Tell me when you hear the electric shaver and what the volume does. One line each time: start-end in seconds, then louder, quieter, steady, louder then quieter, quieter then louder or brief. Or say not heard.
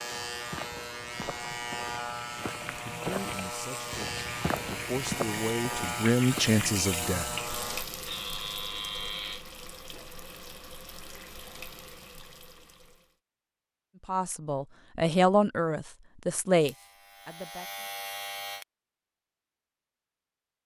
0.0-9.4 steady
16.6-18.6 brief.